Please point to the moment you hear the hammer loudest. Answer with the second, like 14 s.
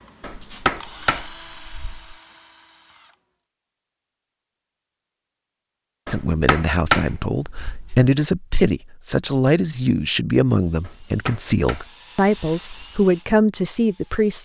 7 s.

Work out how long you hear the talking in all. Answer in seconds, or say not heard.
8 s.